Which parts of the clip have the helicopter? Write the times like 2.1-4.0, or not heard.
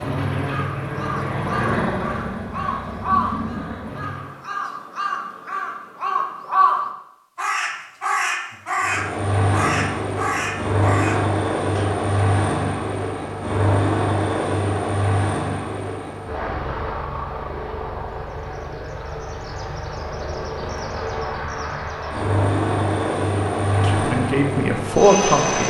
0.0-4.4, 8.8-25.6.